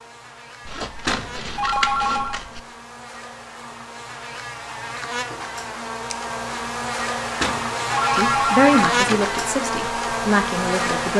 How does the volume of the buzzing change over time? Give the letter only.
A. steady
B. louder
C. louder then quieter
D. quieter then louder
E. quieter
B.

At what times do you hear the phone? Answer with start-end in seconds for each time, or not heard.
1.1-2.4, 7.4-9.2.